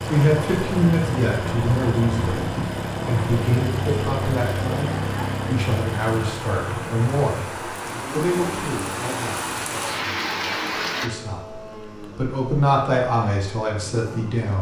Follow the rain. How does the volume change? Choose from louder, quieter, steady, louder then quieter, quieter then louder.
louder.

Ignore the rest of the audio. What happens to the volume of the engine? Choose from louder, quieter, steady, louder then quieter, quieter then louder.
quieter.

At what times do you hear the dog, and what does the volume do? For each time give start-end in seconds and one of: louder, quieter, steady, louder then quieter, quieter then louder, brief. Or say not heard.
not heard.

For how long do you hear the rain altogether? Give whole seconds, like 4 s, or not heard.
11 s.